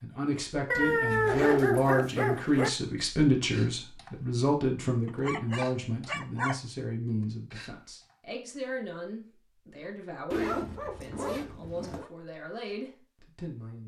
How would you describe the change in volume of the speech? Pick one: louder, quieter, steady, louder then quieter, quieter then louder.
quieter.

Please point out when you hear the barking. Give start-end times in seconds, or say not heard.
0.7-2.7, 5.0-6.5, 10.4-12.1.